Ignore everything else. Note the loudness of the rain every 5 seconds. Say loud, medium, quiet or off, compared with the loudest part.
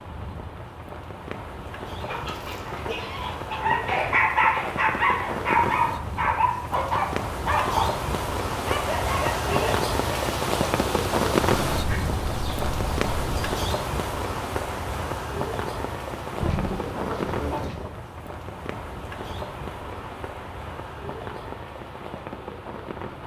medium, loud, loud, medium, medium.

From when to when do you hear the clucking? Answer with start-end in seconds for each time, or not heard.
2.0-3.6, 11.7-13.5, 16.4-17.9.